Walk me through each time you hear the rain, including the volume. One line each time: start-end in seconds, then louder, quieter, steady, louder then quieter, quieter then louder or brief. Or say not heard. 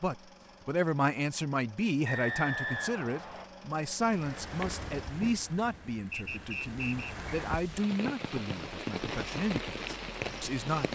4.0-10.9 quieter then louder.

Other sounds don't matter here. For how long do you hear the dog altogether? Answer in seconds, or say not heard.
not heard.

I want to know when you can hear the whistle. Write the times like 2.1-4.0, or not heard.
2.0-3.5, 6.1-7.2.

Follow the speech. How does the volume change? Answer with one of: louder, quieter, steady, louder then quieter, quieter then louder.
quieter.